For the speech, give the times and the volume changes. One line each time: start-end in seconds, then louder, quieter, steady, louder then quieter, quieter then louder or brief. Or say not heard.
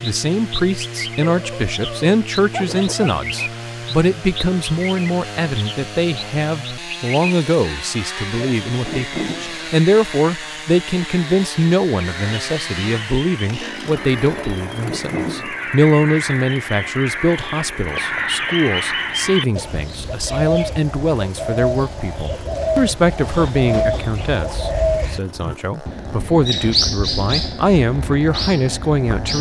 0.0-29.3 steady.